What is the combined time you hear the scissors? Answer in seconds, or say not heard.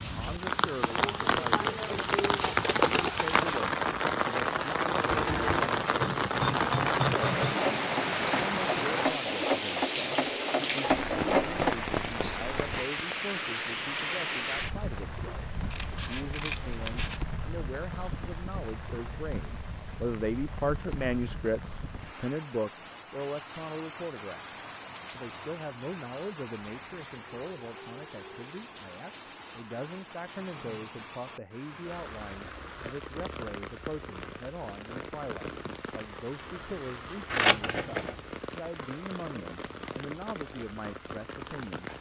4 s.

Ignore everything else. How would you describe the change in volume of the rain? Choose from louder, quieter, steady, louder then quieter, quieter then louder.
quieter.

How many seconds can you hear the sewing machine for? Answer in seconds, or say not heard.
7 s.